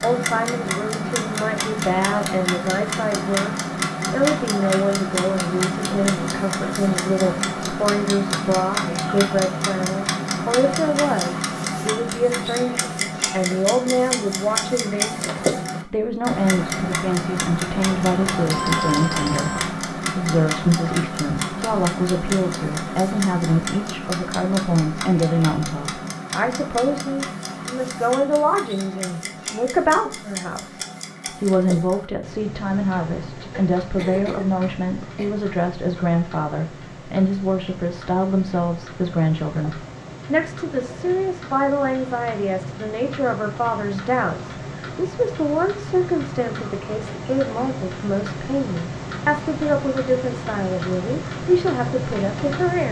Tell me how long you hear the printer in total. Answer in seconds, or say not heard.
not heard.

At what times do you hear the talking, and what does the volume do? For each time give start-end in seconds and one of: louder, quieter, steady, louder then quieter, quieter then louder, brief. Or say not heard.
0.0-52.8 steady.